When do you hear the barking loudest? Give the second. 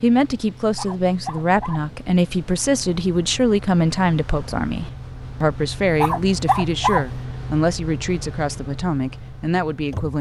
7 s.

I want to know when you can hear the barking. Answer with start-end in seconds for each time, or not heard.
0.8-1.9, 6.0-7.2.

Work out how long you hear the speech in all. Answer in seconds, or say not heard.
10 s.